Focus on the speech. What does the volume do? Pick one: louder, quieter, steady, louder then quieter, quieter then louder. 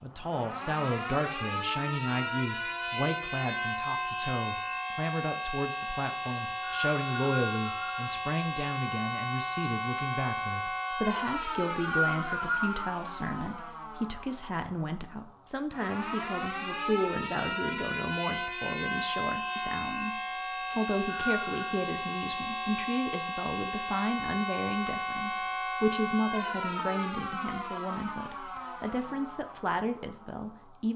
steady.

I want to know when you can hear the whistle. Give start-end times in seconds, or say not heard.
6.2-8.2, 11.4-12.9, 20.7-21.4.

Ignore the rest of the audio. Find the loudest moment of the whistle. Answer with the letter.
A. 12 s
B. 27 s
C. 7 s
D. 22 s
A.